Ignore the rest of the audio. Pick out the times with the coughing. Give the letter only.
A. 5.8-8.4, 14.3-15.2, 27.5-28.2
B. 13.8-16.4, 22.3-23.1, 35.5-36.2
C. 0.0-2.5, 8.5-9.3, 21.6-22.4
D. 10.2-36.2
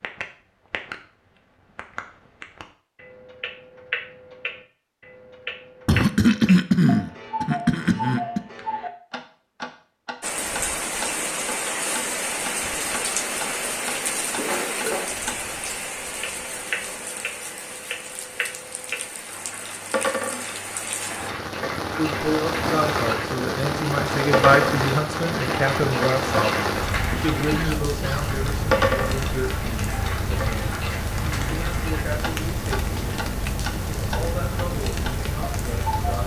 A.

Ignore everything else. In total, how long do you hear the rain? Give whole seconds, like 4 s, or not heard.
26 s.